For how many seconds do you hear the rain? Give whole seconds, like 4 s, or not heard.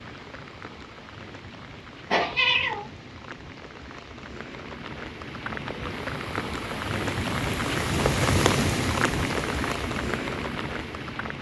11 s.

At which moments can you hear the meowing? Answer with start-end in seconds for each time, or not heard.
2.1-2.9.